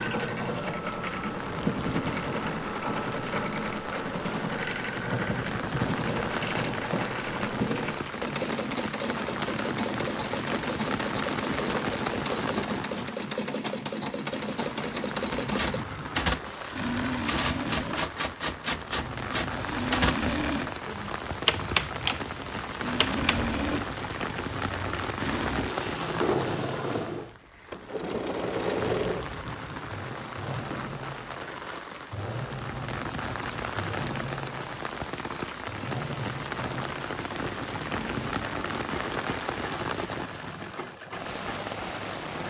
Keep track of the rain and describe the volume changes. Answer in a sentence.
The volume of the rain stays about the same.